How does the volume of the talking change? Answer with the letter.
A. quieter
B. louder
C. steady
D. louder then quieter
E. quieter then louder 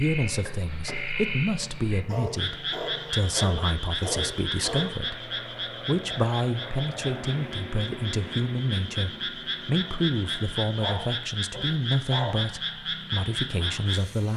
C.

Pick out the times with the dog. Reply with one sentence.
The dog can be heard from 2.0 to 5.0 s and from 10.8 to 12.4 s.